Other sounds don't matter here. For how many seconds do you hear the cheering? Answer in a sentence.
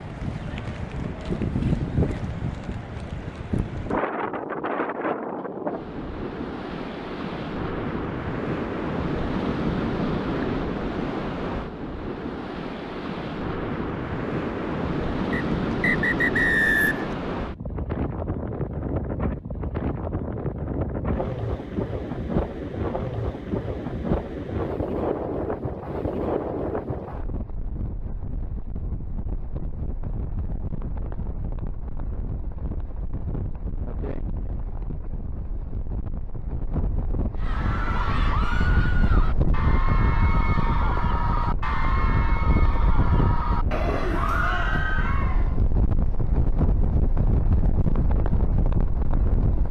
The cheering can be heard for 8 seconds in total.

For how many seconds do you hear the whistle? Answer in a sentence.
You can hear the whistle for 2 seconds altogether.